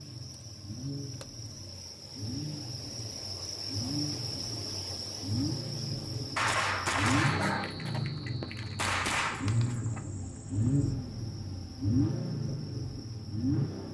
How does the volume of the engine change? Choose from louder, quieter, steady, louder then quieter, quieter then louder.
louder.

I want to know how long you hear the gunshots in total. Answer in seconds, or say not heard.
4 s.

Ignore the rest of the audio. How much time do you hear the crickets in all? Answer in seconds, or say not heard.
14 s.